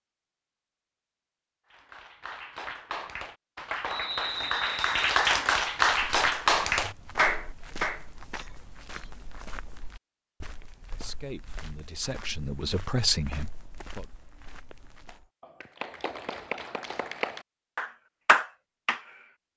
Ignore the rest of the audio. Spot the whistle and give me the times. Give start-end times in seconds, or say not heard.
3.9-5.2.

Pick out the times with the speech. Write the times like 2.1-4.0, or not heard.
10.8-14.1.